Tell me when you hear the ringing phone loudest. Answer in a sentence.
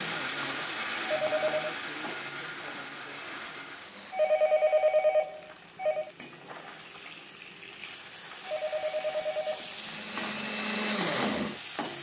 The volume of the ringing phone peaks at 5 seconds.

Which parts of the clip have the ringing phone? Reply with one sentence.
The ringing phone can be heard from 1.0 to 1.8 s, from 4.1 to 6.1 s and from 8.4 to 9.8 s.